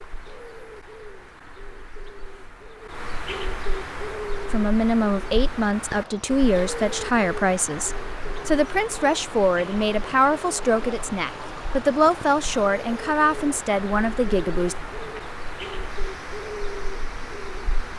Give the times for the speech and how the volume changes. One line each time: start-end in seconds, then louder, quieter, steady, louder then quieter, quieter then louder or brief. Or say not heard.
4.5-14.8 steady.